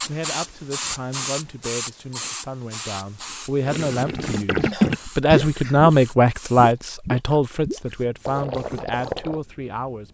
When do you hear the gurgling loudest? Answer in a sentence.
The volume of the gurgling peaks at 5 seconds.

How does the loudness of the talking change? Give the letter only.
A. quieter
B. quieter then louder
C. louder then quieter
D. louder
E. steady
C.